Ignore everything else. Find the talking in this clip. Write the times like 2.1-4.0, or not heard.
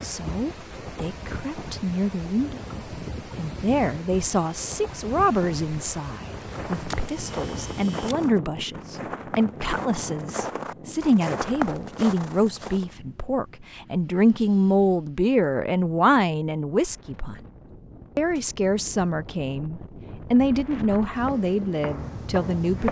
0.0-17.4, 18.1-22.8.